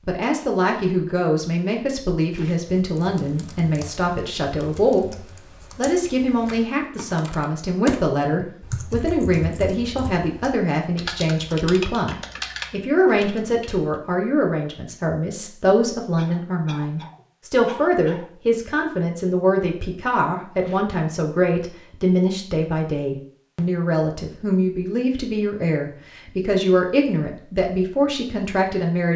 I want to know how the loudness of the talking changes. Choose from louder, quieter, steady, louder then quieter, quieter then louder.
steady.